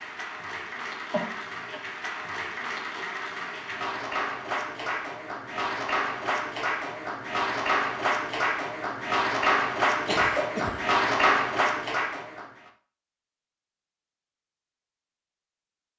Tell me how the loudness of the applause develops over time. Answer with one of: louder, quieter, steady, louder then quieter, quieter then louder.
louder.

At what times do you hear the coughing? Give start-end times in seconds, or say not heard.
1.1-1.8, 9.8-10.8.